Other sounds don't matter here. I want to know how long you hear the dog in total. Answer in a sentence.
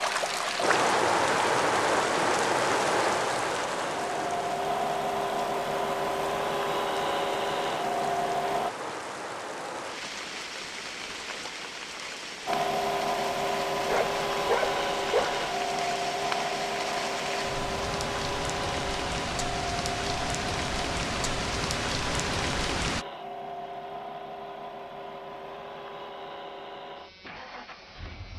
You can hear the dog for 2 seconds altogether.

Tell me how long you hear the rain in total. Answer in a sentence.
You can hear the rain for 23 seconds altogether.